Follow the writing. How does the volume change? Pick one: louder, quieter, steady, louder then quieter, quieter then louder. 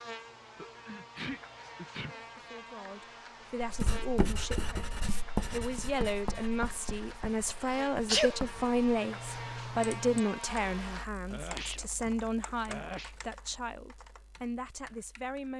quieter.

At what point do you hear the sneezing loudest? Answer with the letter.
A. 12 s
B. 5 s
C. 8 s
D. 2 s
C.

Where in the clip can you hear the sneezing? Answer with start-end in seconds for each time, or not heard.
0.6-2.1, 7.2-8.3, 11.3-13.2.